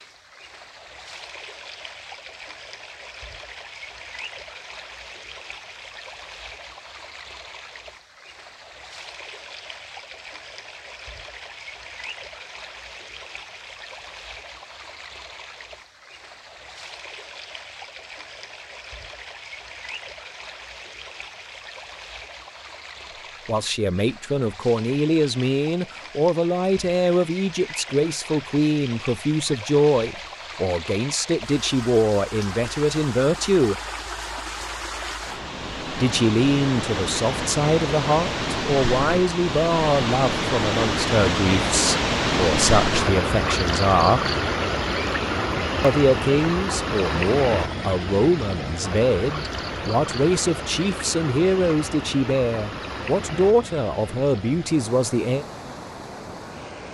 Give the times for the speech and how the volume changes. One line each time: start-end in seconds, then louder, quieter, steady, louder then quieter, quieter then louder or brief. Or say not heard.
23.4-33.8 steady
36.0-44.2 steady
45.8-55.5 steady.